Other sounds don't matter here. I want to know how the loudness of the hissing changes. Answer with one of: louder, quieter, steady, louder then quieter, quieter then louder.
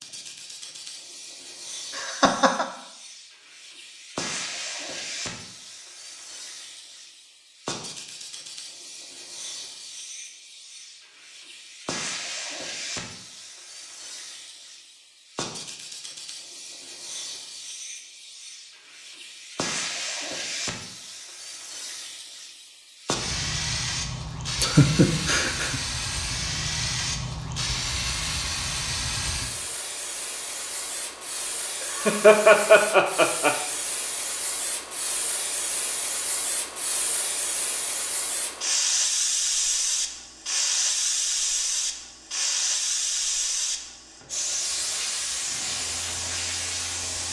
louder.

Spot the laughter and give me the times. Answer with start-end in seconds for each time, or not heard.
1.9-2.6, 24.6-25.8, 31.9-33.5.